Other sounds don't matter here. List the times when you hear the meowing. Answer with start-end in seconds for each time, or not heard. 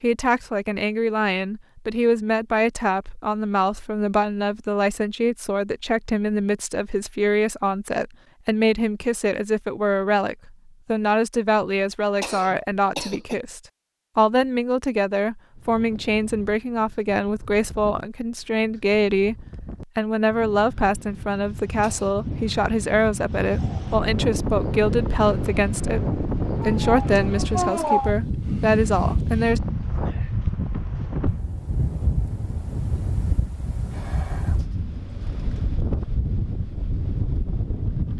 26.6-28.1.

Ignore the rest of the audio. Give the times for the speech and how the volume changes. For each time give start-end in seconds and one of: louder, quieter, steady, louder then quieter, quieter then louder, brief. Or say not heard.
0.0-29.6 steady.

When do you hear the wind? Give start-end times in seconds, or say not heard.
15.6-38.1.